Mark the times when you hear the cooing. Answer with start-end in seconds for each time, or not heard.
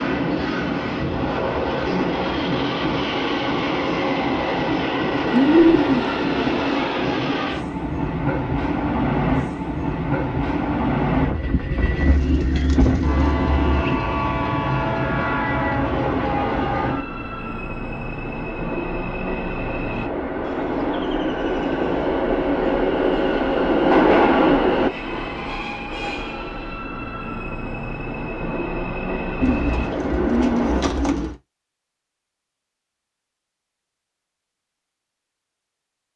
5.2-7.0, 11.9-14.0, 20.4-22.1, 29.4-31.4.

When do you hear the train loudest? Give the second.
24 s.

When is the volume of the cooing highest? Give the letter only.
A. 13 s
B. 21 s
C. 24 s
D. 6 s
D.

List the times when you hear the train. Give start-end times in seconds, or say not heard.
0.0-31.2.